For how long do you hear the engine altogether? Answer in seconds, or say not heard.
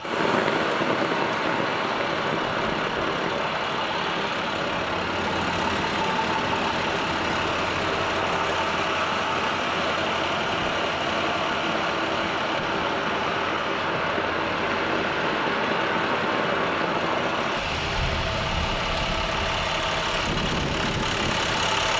22 s.